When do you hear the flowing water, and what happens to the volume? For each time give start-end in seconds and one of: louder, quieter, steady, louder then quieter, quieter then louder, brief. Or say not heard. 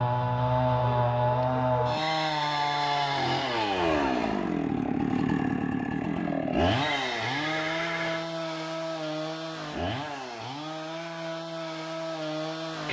not heard.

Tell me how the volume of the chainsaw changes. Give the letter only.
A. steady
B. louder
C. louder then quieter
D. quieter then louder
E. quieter
E.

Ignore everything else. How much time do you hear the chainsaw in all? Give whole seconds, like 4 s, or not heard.
13 s.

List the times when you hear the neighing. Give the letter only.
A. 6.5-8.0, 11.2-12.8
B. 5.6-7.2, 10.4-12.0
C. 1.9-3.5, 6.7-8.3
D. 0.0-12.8
C.